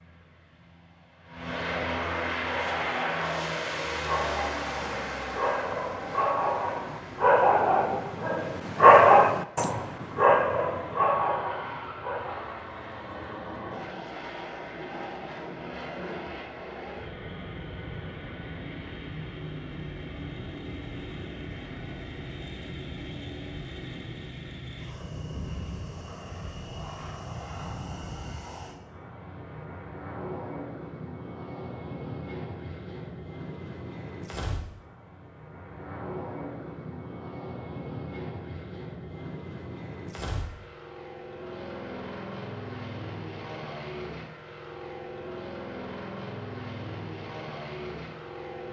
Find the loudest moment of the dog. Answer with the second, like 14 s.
9 s.